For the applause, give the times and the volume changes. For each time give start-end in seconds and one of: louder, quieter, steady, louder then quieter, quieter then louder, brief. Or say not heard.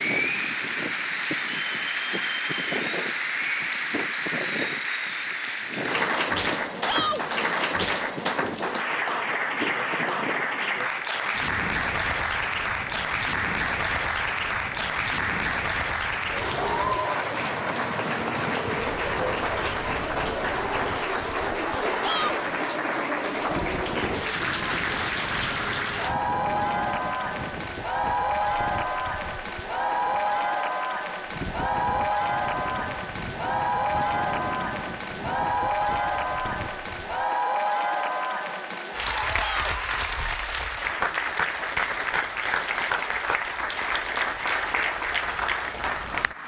0.0-46.4 steady.